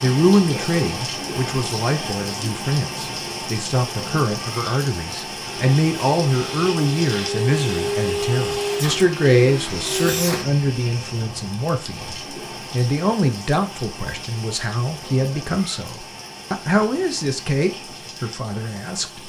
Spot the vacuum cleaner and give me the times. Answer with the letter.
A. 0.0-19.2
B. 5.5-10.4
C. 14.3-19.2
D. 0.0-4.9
B.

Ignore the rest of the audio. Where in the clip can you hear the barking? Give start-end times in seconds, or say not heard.
not heard.